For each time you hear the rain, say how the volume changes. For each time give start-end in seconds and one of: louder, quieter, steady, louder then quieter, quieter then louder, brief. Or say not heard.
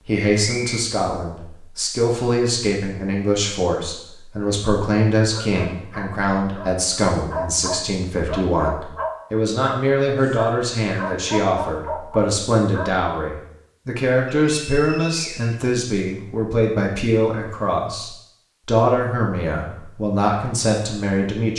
not heard.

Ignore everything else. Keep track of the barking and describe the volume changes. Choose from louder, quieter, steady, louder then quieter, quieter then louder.
louder.